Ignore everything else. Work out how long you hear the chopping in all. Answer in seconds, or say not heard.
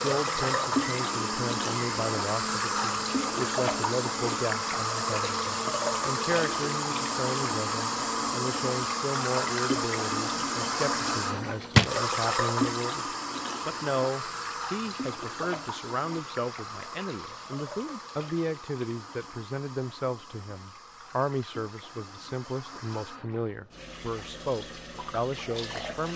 not heard.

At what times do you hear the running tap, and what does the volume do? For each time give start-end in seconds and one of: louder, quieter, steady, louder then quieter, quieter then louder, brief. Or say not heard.
0.0-26.1 quieter.